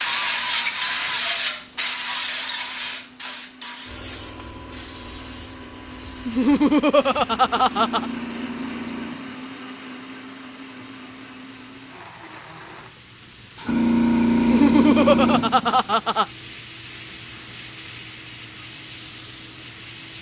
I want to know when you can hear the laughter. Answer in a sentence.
You can hear the laughter from 6.2 to 8.1 s and from 14.3 to 16.2 s.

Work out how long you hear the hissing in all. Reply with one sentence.
You can hear the hissing for 20 seconds altogether.